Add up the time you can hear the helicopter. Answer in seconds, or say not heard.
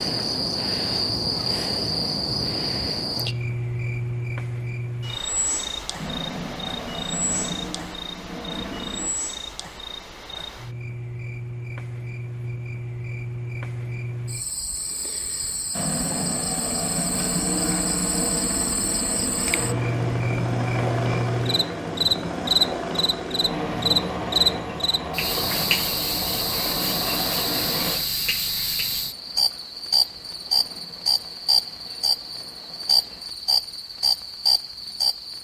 21 s.